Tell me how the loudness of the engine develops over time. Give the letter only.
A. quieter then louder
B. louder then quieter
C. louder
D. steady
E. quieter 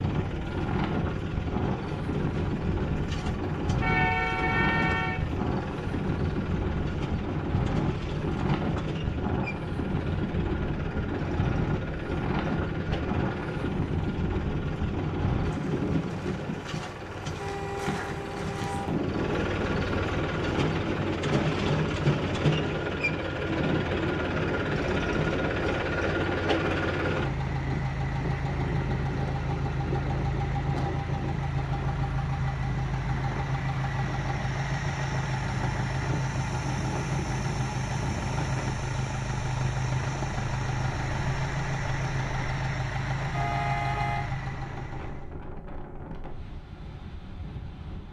C.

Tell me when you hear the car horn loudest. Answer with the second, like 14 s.
4 s.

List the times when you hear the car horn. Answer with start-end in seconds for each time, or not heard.
3.8-5.2, 17.4-18.9, 43.3-44.2.